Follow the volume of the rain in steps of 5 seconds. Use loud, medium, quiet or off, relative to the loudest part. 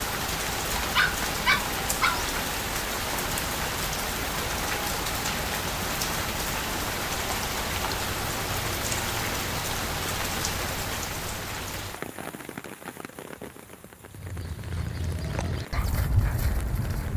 loud, loud, medium, quiet.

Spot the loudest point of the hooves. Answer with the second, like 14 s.
16 s.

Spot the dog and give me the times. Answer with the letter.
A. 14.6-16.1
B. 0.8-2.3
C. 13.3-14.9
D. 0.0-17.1
B.